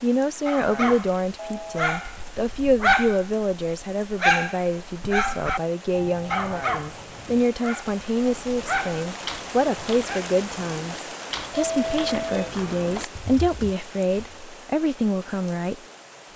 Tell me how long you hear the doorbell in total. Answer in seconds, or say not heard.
3 s.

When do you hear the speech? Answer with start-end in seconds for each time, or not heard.
0.0-15.8.